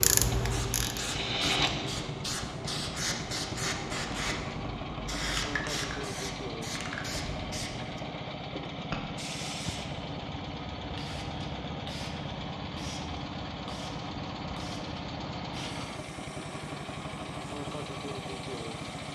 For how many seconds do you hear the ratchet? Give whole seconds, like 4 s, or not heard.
2 s.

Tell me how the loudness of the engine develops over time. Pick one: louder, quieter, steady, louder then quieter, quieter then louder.
steady.